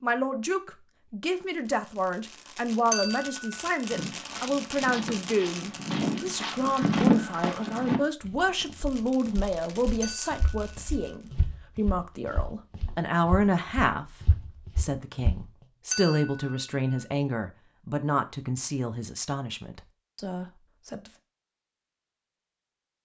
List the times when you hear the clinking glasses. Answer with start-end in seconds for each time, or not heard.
2.9-3.5, 10.0-10.4, 15.9-16.5.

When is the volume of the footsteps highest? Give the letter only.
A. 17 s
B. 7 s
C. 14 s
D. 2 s
B.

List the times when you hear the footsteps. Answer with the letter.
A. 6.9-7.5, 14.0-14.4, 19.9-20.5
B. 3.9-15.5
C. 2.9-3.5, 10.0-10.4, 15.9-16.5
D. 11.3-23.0
B.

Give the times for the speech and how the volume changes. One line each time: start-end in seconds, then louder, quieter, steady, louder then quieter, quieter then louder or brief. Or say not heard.
0.0-14.1 steady
14.8-21.1 quieter.